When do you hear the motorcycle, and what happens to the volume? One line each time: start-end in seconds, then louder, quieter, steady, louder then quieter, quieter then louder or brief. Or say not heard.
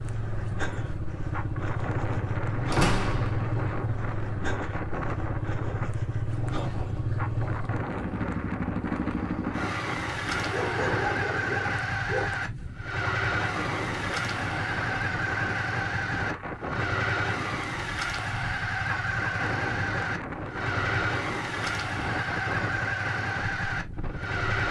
0.0-24.6 steady.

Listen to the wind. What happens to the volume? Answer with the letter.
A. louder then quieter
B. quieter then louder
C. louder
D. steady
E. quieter
D.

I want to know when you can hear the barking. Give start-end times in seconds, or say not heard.
10.4-12.2.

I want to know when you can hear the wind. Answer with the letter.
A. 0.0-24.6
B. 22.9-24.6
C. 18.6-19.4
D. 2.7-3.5
A.